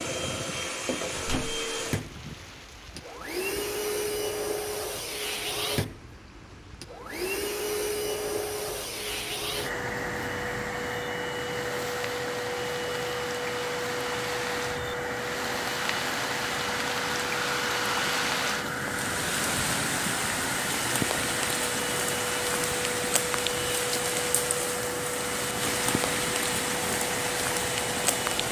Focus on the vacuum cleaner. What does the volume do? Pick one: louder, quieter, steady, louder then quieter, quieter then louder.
steady.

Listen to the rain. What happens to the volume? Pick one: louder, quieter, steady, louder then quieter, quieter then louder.
louder.